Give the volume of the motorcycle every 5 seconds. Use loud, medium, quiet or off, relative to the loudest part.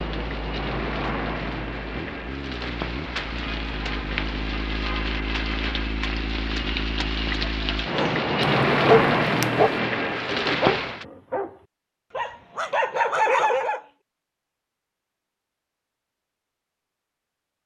loud, loud, off, off.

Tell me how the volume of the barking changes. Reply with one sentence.
The volume of the barking goes down, then up.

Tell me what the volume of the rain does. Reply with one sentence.
The loudness of the rain goes up.